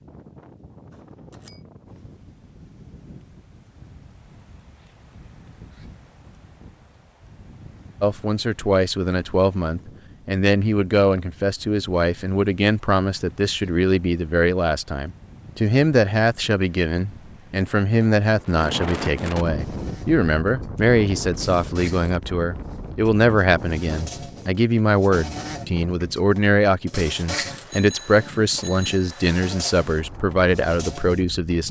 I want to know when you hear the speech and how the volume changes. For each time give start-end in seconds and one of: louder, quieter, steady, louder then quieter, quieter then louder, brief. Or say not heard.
8.0-31.6 steady.